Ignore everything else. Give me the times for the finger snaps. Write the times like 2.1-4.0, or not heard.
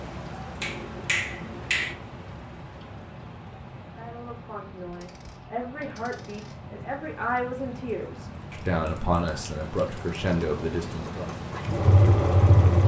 0.6-1.9, 8.6-10.2.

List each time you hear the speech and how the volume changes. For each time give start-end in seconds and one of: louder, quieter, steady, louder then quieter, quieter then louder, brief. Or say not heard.
4.0-11.3 louder.